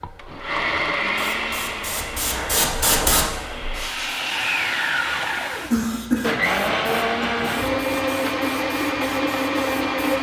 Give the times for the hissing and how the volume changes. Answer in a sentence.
The hissing can be heard from 0.0 to 10.1 s, getting louder then quieter.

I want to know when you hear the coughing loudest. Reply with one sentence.
The loudest moment of the coughing is at 6 seconds.